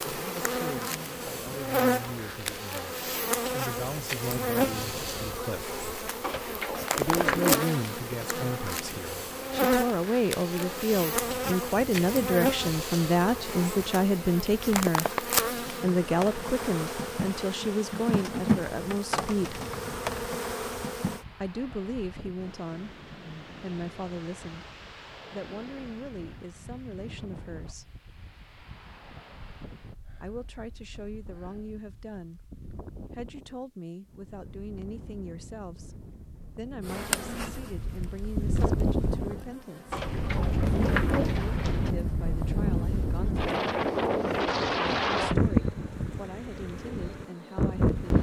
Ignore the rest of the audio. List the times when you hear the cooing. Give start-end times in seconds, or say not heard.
6.2-7.8, 39.9-42.0.